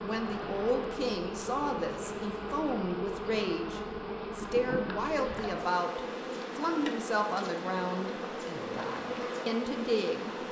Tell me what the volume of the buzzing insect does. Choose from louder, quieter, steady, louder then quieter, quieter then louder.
steady.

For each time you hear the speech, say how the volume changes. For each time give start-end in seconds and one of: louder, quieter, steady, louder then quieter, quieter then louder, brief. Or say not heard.
0.0-10.4 steady.